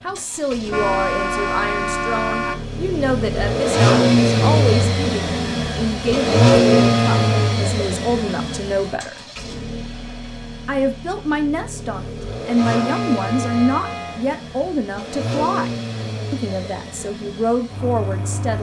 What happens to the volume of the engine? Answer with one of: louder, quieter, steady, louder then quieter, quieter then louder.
louder then quieter.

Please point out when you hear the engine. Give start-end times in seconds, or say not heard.
0.0-18.5.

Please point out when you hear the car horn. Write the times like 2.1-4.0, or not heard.
0.7-2.6, 6.7-7.7, 12.6-14.2.